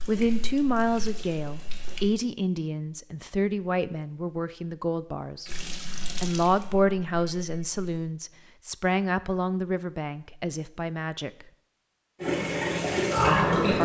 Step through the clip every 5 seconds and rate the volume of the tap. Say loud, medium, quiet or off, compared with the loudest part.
quiet, quiet, loud.